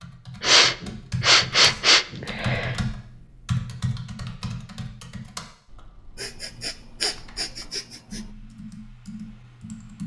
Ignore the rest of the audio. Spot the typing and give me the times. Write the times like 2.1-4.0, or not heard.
0.0-10.0.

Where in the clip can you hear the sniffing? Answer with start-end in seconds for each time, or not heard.
0.4-2.8, 6.2-8.2.